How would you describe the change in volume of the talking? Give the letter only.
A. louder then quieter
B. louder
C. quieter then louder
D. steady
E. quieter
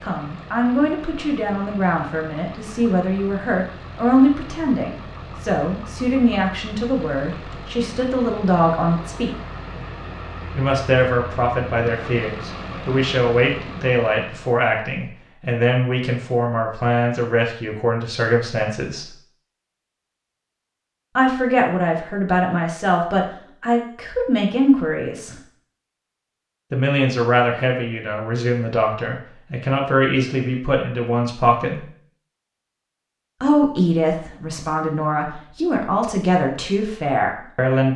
D.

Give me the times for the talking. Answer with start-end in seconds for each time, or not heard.
0.0-9.3, 10.6-19.1, 21.1-25.4, 26.7-31.9, 33.4-37.9.